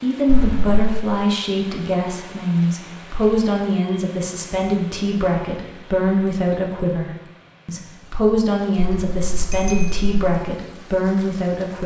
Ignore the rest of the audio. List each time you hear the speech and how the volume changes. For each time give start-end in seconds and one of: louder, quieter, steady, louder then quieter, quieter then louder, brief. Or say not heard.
0.0-11.8 steady.